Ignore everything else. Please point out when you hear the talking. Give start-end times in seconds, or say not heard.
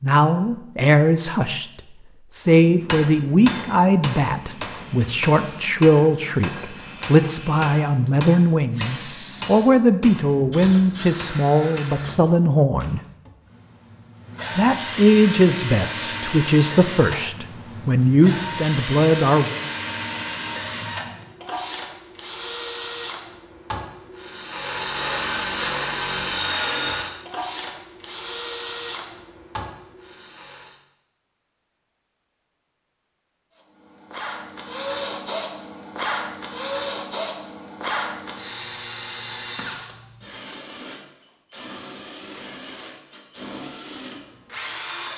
0.0-13.0, 14.6-19.6.